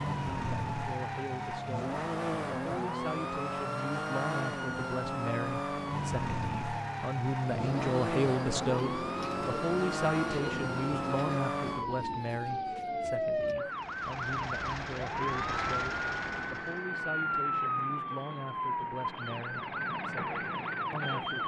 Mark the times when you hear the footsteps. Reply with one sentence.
The footsteps can't be heard in this clip.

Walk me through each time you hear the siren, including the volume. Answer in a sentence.
The siren can be heard from 0.0 to 21.4 s, at a steady volume.